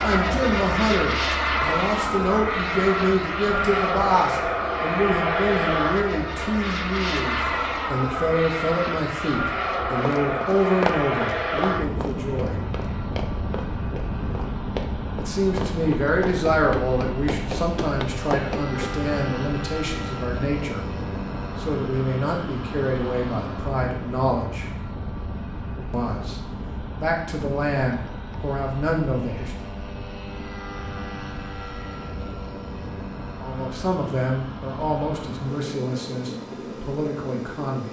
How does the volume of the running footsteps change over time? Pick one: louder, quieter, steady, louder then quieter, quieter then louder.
quieter then louder.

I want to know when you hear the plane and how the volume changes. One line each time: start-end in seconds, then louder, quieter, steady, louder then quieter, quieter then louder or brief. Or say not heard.
0.0-37.8 quieter.